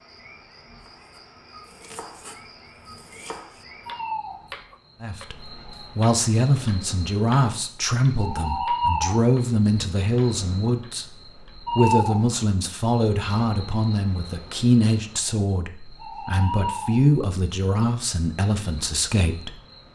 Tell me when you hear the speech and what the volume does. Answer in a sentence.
The speech can be heard from 5.0 to 19.6 s, at a steady volume.